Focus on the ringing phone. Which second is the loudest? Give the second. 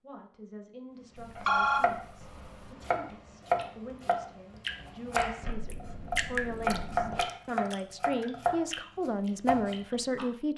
2 s.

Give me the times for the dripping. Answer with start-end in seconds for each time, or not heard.
3.0-10.2.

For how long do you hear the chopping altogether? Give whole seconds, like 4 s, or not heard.
9 s.